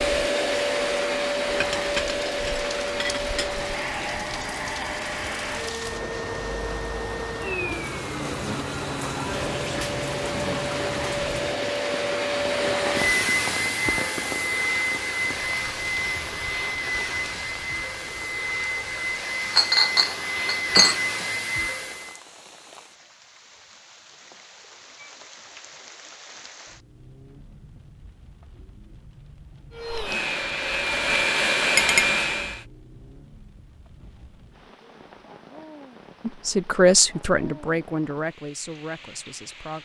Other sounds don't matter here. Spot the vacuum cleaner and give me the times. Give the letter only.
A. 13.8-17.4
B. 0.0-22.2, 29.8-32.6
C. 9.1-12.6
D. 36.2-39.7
B.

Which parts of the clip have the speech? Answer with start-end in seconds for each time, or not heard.
36.2-39.7.